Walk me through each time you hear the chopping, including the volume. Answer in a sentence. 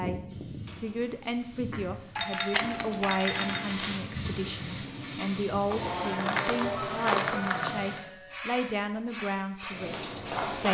You can't hear the chopping here.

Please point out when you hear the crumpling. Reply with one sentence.
The crumpling can be heard from 2.5 to 3.2 s and from 5.7 to 7.7 s.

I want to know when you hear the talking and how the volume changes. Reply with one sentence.
You can hear the talking from 0.0 to 10.6 s, at a steady volume.